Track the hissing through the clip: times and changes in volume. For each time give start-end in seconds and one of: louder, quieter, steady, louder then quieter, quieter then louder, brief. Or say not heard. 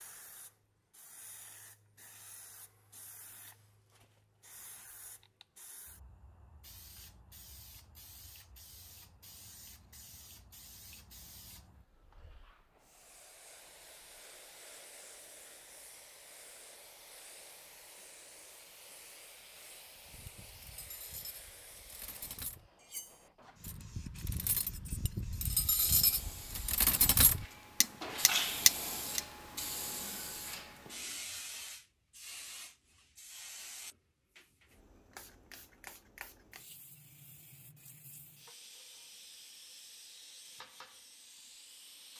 0.0-42.1 louder then quieter.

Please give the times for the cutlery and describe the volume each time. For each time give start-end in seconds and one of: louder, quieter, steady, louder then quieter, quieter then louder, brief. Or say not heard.
20.1-29.2 louder.